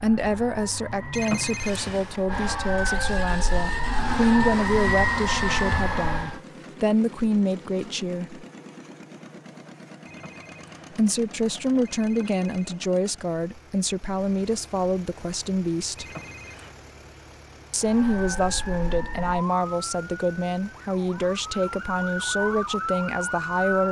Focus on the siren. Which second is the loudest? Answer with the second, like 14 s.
5 s.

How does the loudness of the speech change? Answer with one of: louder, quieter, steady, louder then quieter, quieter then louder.
steady.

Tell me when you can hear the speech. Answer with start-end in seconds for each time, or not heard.
0.0-8.4, 10.9-16.1, 17.7-23.8.